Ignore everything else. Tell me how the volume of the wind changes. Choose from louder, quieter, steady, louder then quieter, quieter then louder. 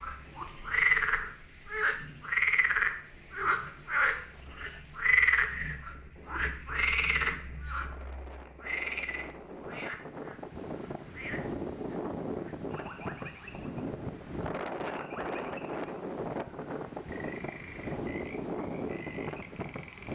louder.